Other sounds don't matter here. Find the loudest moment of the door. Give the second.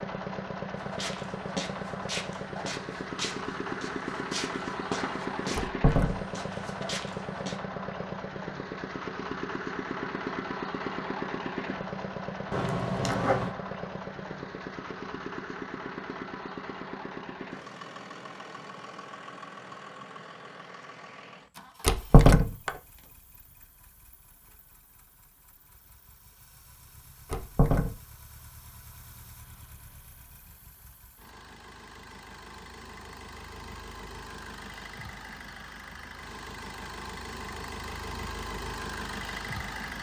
22 s.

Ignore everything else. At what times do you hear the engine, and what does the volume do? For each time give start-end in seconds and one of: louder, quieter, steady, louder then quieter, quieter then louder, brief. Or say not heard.
0.0-39.9 quieter then louder.